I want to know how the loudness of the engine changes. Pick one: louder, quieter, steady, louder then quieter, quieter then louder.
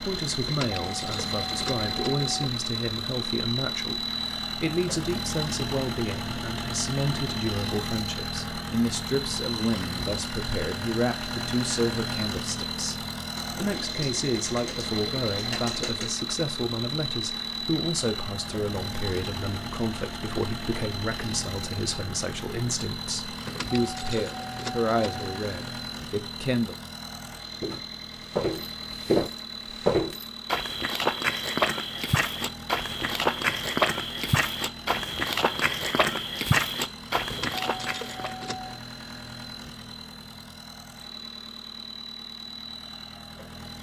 quieter.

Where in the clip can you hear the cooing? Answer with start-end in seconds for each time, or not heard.
13.3-16.1.